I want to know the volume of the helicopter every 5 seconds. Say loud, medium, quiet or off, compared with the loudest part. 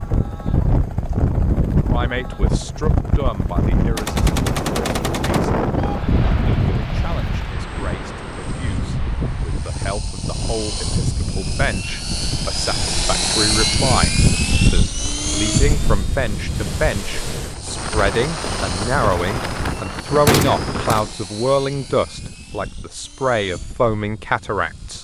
quiet, quiet, loud, medium, quiet.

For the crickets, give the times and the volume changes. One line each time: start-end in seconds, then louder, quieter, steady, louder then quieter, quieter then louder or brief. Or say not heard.
not heard.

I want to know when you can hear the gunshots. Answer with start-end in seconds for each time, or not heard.
4.0-6.0, 17.9-21.0.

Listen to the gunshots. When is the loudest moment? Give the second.
20 s.